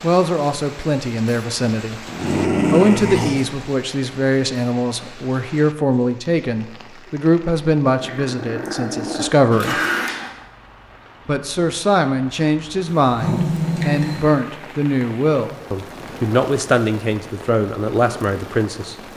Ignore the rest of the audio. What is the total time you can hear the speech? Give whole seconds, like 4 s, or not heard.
17 s.